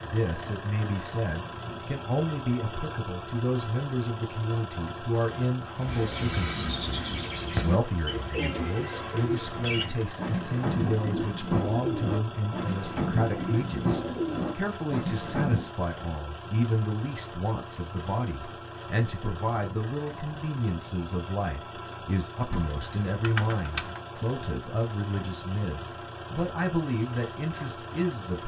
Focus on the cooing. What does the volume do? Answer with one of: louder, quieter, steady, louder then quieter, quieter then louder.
steady.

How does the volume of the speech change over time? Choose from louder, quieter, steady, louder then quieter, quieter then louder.
steady.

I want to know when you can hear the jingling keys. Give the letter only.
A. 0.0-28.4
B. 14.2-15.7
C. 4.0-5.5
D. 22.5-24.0
D.